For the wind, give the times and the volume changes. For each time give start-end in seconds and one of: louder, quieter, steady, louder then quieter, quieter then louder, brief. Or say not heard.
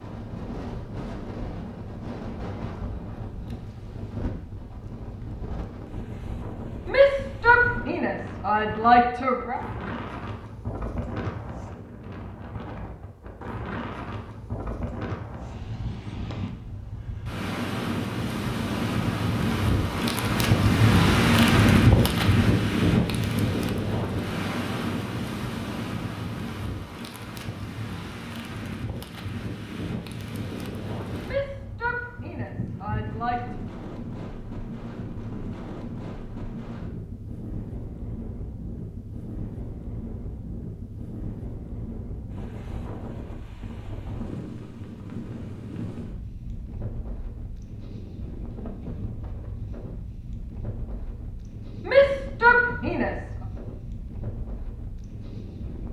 0.0-55.8 louder then quieter.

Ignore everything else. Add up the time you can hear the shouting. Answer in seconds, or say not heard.
6 s.